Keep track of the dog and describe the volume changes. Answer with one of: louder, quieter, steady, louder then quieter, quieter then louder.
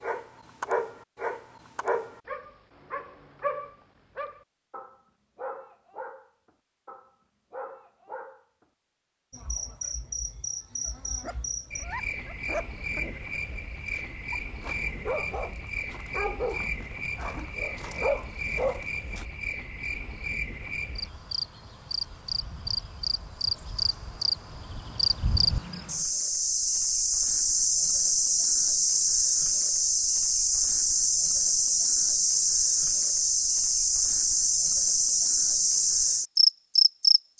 quieter then louder.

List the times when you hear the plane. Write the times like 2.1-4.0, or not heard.
not heard.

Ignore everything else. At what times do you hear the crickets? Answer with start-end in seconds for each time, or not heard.
9.3-37.3.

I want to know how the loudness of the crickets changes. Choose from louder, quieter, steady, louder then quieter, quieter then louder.
louder.